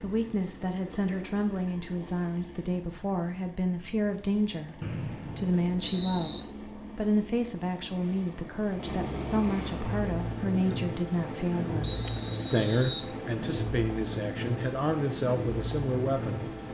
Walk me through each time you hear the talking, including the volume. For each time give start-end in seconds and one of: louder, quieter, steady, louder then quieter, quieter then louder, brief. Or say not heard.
0.0-16.5 steady.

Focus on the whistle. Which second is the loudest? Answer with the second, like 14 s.
12 s.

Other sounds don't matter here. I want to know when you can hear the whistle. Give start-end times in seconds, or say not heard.
4.8-6.4, 11.8-13.2.